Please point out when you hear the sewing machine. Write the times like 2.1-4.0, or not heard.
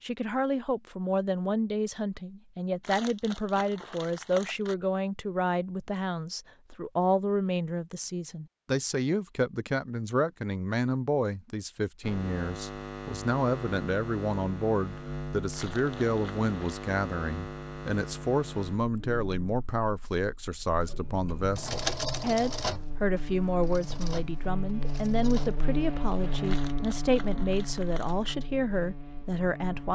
20.9-26.6.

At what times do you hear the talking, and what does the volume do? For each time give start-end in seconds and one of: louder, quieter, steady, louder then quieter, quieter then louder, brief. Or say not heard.
0.0-29.9 steady.